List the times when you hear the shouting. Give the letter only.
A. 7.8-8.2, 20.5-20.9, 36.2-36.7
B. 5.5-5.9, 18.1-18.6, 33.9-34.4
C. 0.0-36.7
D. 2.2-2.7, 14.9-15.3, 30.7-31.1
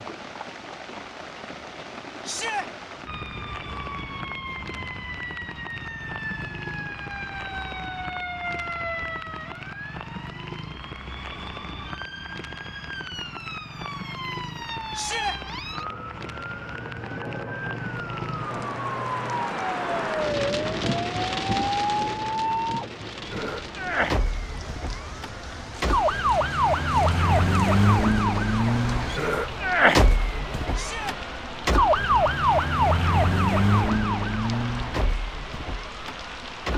D.